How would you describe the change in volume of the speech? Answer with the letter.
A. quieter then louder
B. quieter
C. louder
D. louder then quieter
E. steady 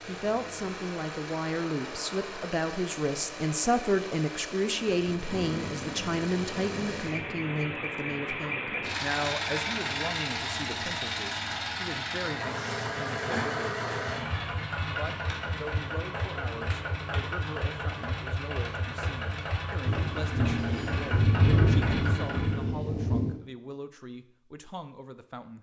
B.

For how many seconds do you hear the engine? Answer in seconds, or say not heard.
23 s.